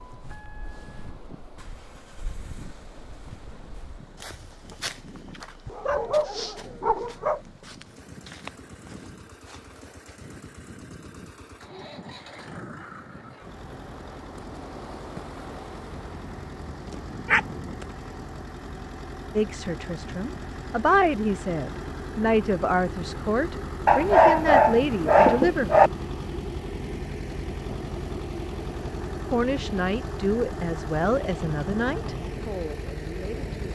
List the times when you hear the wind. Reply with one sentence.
The wind can be heard from 0.0 to 18.4 s.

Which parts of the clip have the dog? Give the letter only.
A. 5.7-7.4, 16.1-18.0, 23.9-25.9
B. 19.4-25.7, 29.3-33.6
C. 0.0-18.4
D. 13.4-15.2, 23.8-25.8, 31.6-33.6
A.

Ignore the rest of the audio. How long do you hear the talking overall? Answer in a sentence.
You can hear the talking for 11 seconds altogether.